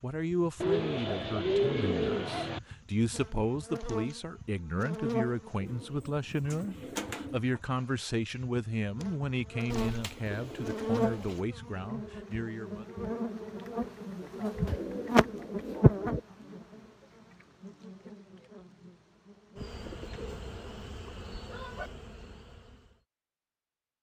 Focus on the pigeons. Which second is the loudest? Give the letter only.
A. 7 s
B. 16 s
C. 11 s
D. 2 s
D.